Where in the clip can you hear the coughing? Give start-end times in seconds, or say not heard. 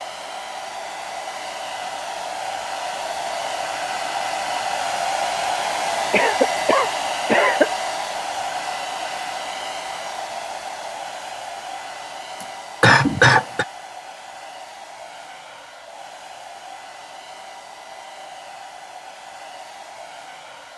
6.1-7.7, 12.4-13.7.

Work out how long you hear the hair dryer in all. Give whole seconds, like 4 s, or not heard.
21 s.